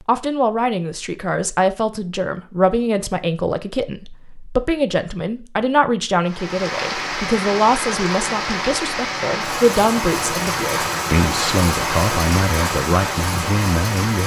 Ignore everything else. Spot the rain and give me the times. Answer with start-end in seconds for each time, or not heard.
6.2-14.2.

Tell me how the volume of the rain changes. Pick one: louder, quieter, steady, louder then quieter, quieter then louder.
steady.